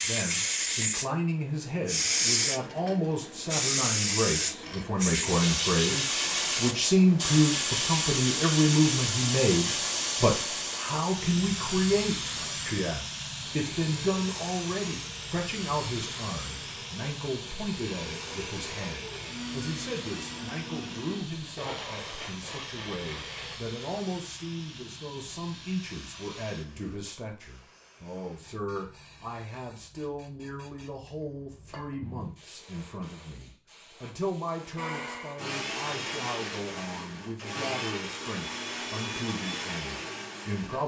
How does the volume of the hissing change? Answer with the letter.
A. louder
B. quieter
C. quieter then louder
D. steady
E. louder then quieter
B.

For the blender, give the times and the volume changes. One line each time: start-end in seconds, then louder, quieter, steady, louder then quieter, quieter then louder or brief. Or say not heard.
12.2-23.6 louder
34.8-40.8 steady.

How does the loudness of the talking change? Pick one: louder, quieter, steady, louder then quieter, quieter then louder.
quieter.